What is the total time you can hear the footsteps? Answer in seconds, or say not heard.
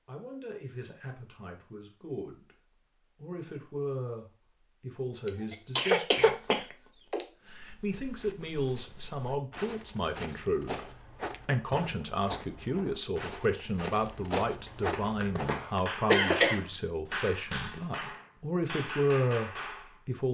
8 s.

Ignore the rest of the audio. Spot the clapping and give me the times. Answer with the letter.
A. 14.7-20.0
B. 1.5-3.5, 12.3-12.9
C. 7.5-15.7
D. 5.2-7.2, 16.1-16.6
A.